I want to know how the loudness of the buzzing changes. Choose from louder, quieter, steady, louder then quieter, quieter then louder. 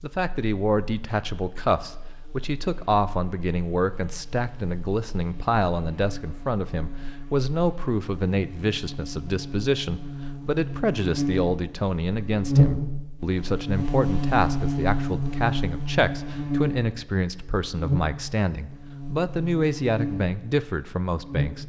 louder then quieter.